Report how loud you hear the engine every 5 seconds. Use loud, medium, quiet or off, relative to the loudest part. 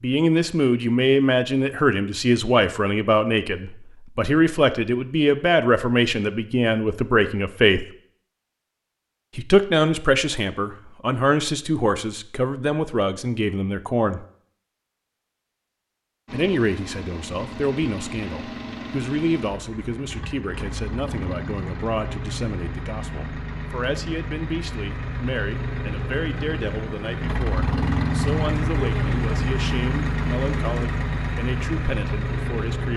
off, off, off, medium, medium, loud, loud.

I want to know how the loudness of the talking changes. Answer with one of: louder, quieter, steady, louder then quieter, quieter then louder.
quieter.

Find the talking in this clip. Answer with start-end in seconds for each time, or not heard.
0.0-7.8, 9.3-14.2, 16.3-32.9.